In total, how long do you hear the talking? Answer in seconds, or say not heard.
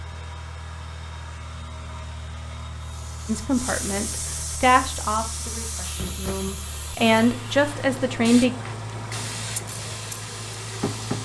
5 s.